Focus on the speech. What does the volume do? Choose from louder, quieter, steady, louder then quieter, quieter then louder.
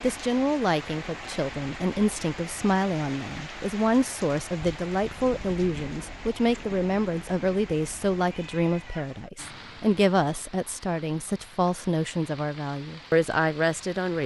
steady.